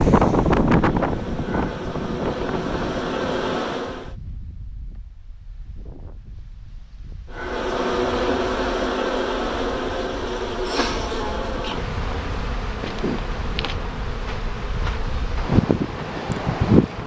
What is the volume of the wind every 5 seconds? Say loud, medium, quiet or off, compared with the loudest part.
loud, quiet, quiet, loud.